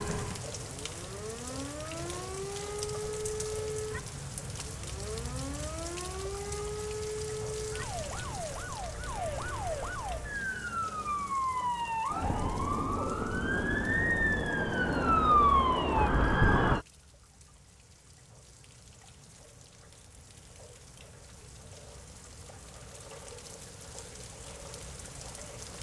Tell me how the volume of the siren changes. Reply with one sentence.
The loudness of the siren goes up.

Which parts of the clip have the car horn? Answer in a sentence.
The car horn can't be heard in this clip.